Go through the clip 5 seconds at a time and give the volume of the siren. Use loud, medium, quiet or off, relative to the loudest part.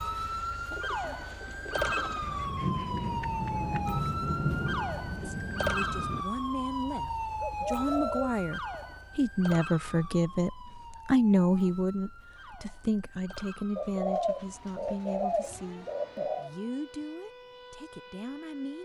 loud, loud, quiet, quiet.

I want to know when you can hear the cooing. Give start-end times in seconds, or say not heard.
0.7-2.2, 6.9-8.3, 13.8-16.5.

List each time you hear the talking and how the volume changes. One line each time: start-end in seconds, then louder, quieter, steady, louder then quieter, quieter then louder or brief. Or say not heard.
5.2-18.8 louder then quieter.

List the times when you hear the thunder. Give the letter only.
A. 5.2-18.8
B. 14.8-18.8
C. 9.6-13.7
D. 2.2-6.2
D.